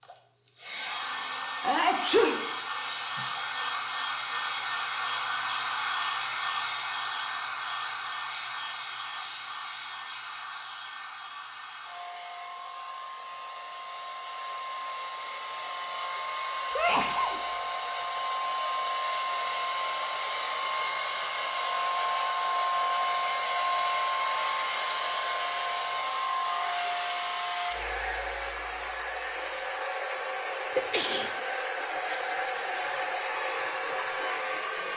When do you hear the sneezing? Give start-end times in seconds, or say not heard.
1.6-3.4, 16.8-17.4, 30.8-31.3.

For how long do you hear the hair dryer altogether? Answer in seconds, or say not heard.
35 s.